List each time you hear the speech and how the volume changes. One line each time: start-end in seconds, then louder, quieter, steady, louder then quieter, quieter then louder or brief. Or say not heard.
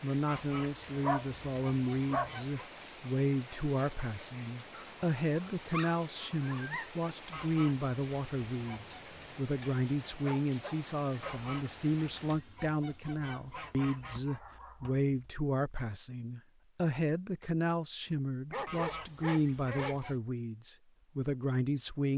0.0-22.1 steady.